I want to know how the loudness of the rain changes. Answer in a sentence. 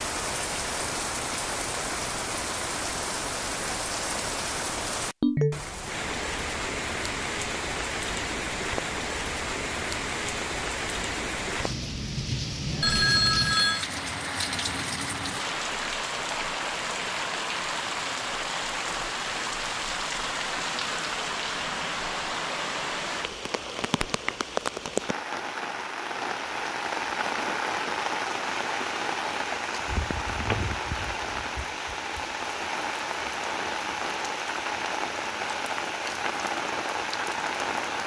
The volume of the rain stays about the same.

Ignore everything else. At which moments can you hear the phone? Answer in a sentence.
The phone can be heard from 5.2 to 5.7 s, from 12.8 to 13.8 s and from 30.1 to 30.6 s.